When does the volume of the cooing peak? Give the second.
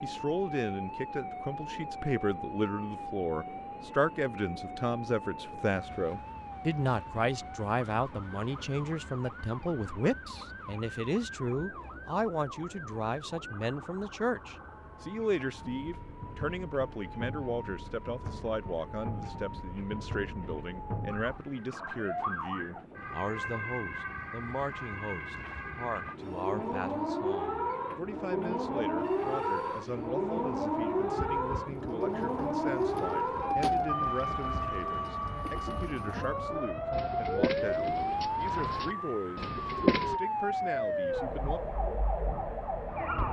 40 s.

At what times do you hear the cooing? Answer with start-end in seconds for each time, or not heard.
31.1-40.2.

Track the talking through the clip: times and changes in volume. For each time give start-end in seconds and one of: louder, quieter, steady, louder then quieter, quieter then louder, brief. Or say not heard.
0.0-41.6 quieter.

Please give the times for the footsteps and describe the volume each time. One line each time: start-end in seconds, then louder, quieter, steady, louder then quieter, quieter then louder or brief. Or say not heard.
not heard.